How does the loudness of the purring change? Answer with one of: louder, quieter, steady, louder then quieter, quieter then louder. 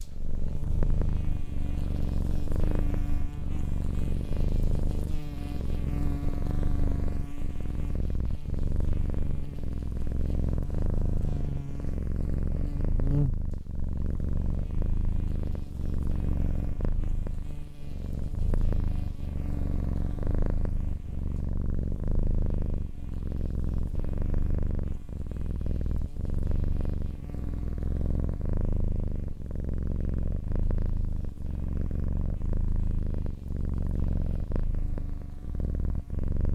steady.